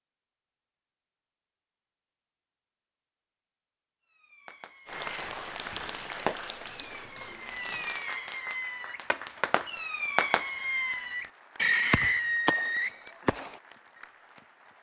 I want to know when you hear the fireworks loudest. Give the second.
12 s.